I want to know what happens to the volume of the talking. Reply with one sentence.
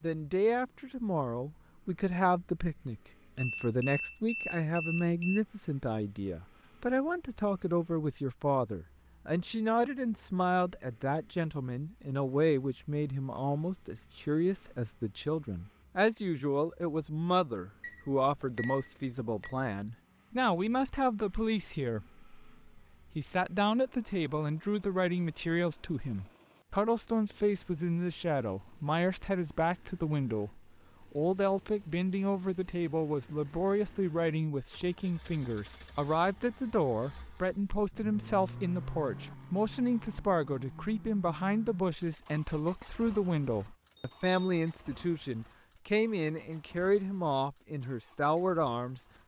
The loudness of the talking stays about the same.